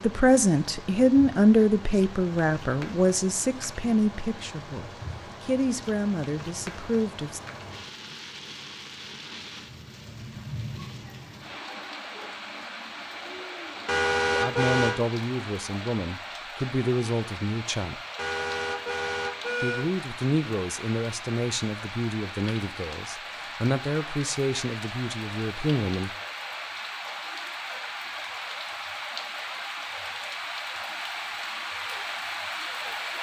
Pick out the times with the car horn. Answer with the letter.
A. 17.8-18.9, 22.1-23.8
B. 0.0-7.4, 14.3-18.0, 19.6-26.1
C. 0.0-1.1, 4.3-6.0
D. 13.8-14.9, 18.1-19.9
D.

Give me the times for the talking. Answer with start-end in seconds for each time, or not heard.
0.0-7.4, 14.3-18.0, 19.6-26.1.